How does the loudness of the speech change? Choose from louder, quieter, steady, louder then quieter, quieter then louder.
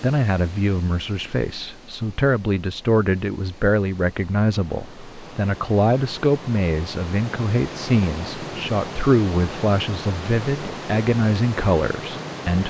steady.